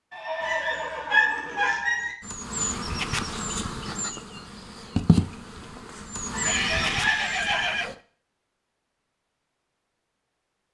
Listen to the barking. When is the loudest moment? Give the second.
1 s.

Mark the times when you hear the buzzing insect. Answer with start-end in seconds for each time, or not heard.
2.2-8.0.